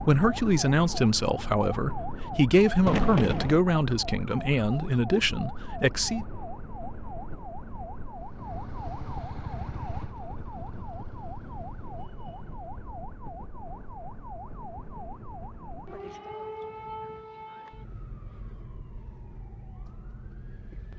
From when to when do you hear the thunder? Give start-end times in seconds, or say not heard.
2.9-3.6.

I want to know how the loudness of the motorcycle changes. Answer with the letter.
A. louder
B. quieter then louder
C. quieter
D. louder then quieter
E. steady
C.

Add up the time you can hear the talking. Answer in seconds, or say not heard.
6 s.